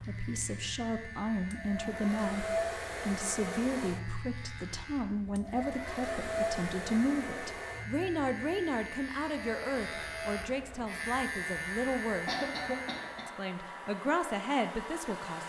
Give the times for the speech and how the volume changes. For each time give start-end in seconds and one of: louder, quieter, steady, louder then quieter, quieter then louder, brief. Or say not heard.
0.1-12.3 steady
13.2-15.4 brief.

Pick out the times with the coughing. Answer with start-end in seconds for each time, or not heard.
12.2-13.3.